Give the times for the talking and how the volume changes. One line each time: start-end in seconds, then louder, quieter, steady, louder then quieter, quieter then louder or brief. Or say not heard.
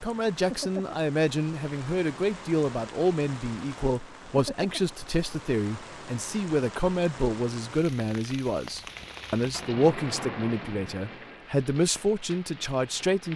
0.0-13.3 steady.